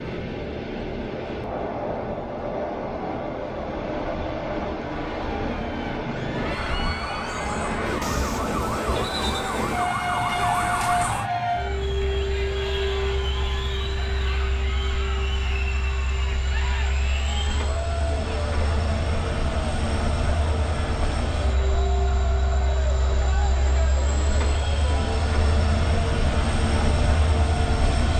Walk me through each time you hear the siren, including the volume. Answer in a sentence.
The siren can be heard from 6.5 to 11.3 s, getting louder.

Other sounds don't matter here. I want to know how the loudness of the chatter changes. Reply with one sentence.
The loudness of the chatter stays about the same.